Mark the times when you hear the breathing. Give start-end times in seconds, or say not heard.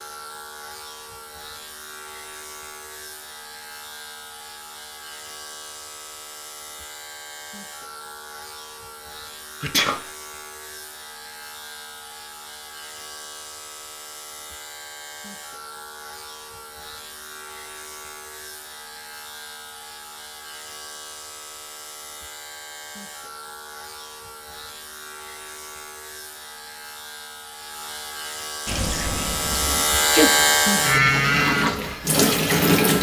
not heard.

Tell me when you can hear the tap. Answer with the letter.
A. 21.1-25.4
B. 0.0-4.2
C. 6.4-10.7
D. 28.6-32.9
D.